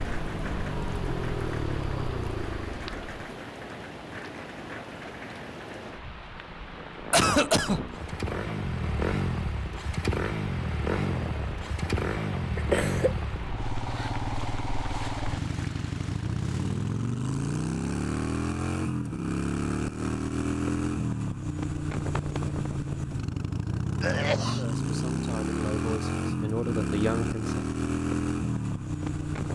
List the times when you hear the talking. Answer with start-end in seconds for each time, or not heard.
24.4-27.6.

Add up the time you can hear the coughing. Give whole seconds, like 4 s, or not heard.
2 s.